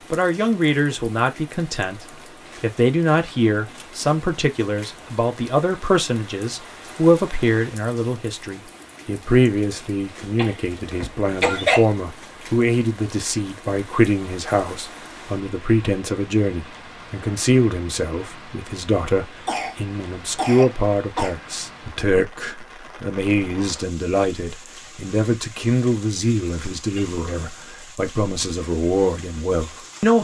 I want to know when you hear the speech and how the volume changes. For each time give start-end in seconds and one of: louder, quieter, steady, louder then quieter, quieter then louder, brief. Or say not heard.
0.1-30.1 steady.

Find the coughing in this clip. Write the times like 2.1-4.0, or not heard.
10.3-11.8, 19.4-21.4.